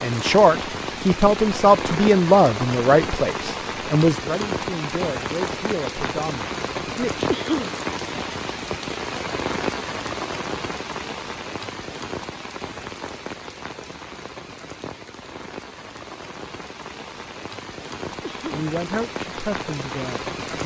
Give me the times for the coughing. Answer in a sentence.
You can hear the coughing from 7.2 to 7.8 s and from 18.2 to 18.7 s.